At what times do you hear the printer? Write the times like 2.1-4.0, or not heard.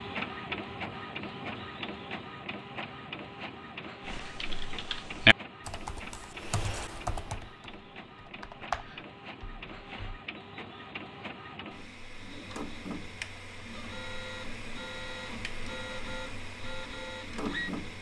0.0-17.9.